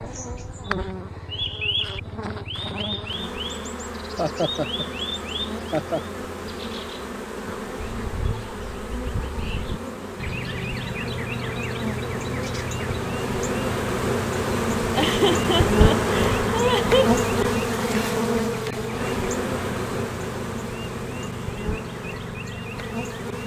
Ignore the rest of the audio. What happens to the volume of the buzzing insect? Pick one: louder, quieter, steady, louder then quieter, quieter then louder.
louder then quieter.